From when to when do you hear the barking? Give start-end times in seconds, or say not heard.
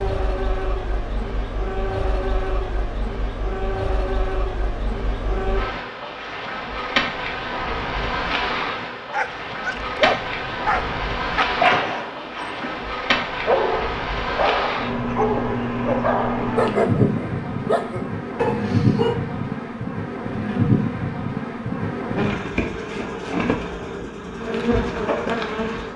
9.1-19.2.